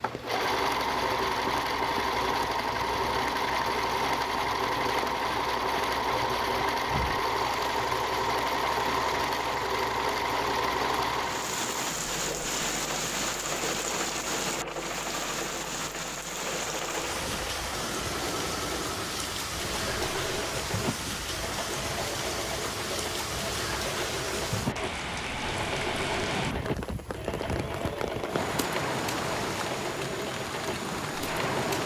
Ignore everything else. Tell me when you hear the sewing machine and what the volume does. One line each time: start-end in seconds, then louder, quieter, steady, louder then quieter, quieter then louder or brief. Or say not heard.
0.0-31.8 quieter.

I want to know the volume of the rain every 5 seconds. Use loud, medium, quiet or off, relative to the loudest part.
medium, medium, loud, loud, loud, loud, loud.